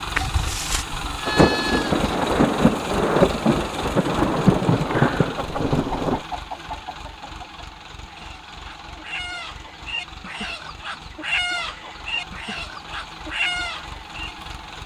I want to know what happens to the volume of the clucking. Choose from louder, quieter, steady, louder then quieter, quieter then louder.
quieter then louder.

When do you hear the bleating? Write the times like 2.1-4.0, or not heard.
0.1-2.1.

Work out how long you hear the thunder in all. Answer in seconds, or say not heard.
5 s.